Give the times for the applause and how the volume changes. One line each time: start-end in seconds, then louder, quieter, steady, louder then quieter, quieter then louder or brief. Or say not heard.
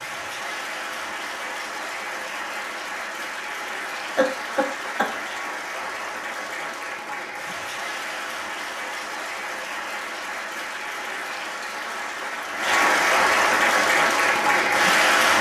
0.0-15.3 louder.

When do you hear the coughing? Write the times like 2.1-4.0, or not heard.
4.2-5.2.